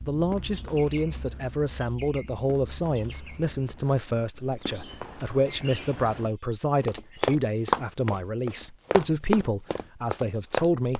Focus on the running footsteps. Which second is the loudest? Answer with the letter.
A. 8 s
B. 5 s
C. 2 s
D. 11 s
A.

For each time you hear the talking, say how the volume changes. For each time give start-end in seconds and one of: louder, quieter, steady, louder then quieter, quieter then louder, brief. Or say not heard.
0.1-10.9 steady.